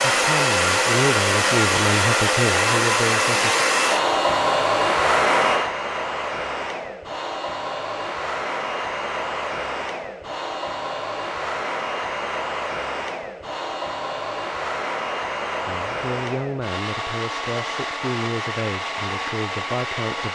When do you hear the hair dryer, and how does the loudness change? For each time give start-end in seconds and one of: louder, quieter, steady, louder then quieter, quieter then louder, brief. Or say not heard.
0.0-20.3 quieter.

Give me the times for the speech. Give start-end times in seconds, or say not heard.
0.1-3.5, 15.7-20.3.